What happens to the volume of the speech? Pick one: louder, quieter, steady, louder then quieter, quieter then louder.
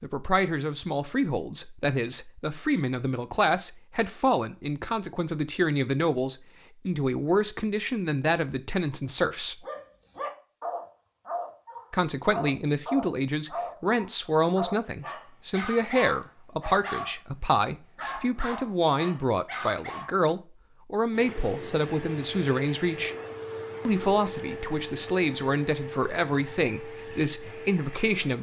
steady.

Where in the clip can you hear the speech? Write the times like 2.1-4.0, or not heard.
0.0-9.7, 11.9-23.1, 23.9-28.3.